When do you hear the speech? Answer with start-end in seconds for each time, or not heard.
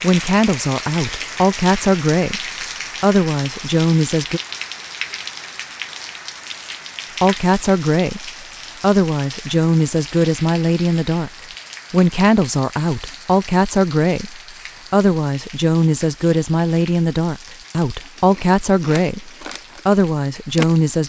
0.0-4.4, 7.2-11.3, 11.9-21.0.